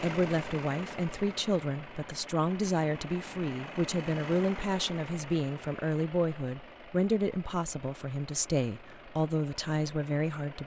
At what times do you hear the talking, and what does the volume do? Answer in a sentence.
You can hear the talking from 0.0 to 10.6 s, at a steady volume.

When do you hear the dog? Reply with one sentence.
You can't hear the dog here.